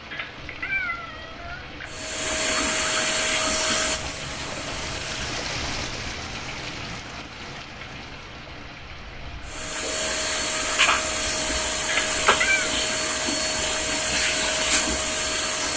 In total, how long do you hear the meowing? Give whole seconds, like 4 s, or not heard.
3 s.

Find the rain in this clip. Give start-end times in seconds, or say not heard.
0.0-15.7.